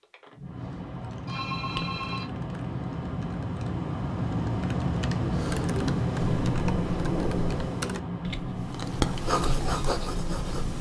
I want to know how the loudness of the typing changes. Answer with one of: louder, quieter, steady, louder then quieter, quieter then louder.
quieter then louder.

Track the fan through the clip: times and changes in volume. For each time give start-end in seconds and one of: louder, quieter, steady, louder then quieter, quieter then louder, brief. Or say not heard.
0.0-10.7 louder then quieter.